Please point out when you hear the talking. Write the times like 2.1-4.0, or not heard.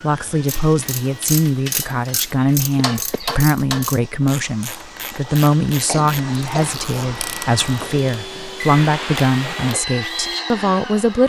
0.0-11.2.